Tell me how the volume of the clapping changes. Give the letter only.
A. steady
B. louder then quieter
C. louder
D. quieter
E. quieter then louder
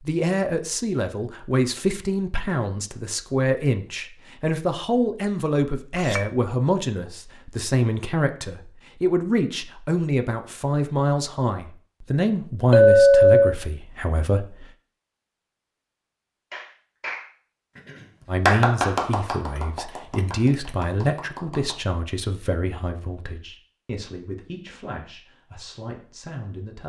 B.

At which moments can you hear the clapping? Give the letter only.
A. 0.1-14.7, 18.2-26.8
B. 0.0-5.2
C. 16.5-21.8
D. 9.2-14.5
C.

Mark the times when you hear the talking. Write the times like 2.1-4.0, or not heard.
0.1-14.7, 18.2-26.8.